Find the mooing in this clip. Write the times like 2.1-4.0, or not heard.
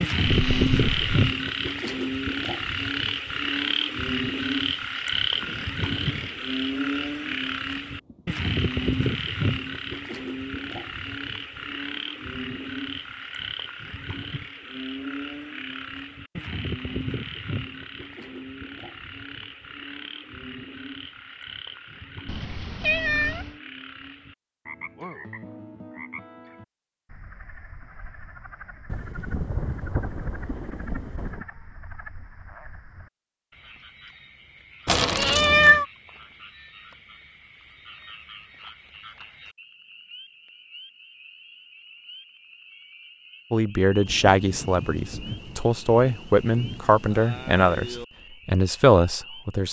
not heard.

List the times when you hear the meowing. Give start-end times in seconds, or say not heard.
0.2-1.1, 22.2-23.5, 34.9-35.9.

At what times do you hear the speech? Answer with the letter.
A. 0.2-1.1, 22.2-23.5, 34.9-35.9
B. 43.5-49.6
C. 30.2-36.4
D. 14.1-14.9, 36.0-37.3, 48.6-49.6
B.